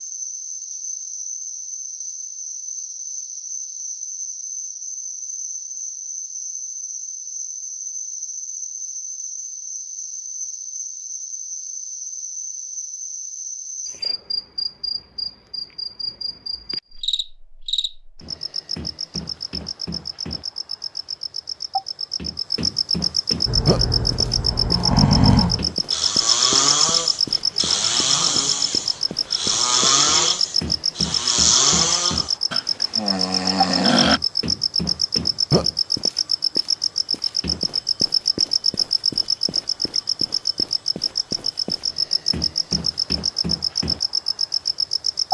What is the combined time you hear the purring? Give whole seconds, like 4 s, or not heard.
not heard.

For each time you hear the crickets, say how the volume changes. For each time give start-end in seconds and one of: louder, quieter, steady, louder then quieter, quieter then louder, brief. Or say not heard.
0.0-45.2 louder.